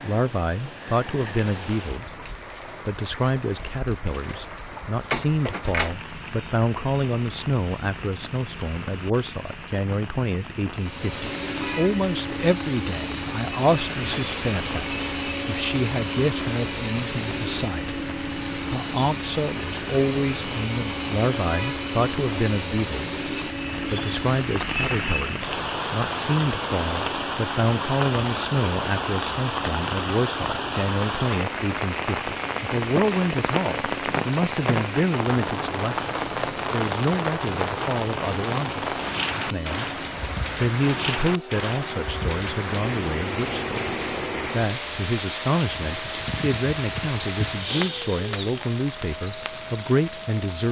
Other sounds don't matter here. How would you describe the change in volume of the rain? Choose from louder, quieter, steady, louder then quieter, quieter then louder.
louder.